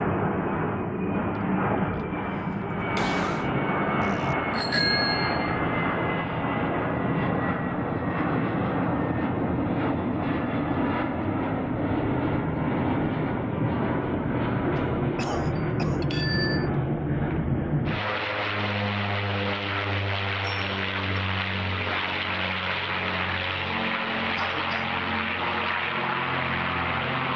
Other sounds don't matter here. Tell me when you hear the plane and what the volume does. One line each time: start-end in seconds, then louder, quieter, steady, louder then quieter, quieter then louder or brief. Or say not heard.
0.0-27.3 steady.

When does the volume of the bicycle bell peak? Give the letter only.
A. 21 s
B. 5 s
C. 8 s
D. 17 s
B.